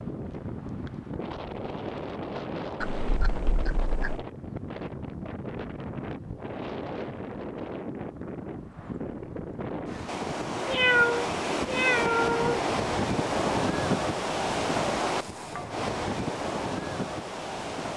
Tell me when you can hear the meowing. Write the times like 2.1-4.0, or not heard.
2.8-4.2, 10.7-12.7.